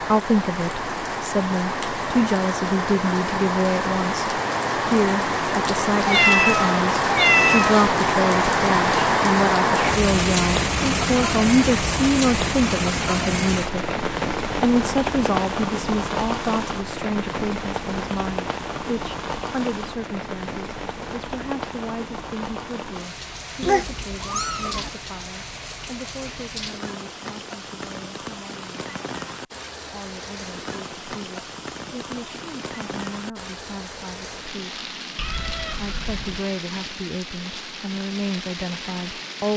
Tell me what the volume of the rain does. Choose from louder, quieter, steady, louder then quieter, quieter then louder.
quieter.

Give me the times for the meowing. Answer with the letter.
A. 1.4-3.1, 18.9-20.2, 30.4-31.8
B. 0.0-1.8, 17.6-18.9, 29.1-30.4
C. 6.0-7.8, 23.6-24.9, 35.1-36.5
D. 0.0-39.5
C.